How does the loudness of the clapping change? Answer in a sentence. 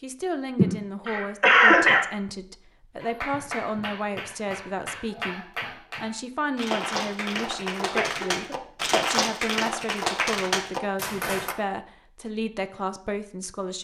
The loudness of the clapping goes up.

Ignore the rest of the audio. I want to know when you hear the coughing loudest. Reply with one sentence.
The loudest moment of the coughing is at 2 seconds.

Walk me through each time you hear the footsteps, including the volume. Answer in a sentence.
The footsteps can't be heard in this clip.